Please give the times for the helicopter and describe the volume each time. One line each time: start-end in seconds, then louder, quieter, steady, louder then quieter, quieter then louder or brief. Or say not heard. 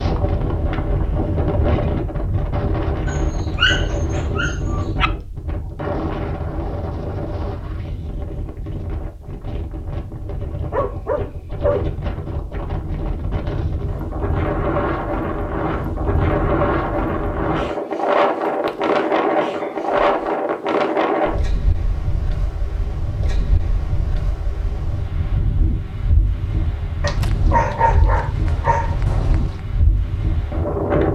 not heard.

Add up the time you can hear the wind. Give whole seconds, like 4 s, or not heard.
31 s.